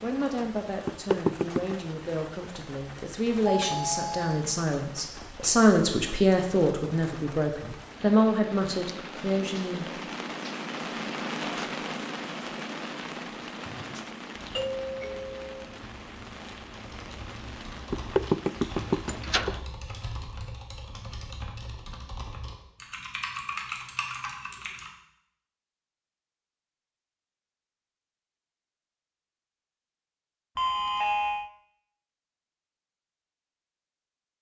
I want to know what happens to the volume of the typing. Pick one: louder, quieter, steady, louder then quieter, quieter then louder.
louder.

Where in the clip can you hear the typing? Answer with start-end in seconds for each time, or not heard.
13.5-24.9.